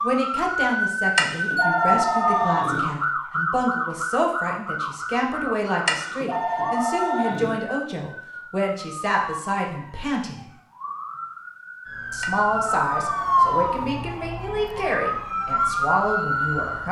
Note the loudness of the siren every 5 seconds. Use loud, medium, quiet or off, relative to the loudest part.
loud, medium, loud, loud.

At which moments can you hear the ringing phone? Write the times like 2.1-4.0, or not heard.
1.1-2.9, 5.8-7.5, 12.2-13.9.